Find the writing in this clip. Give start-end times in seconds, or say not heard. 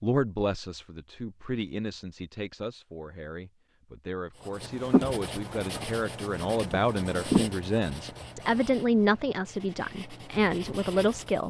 4.5-11.4.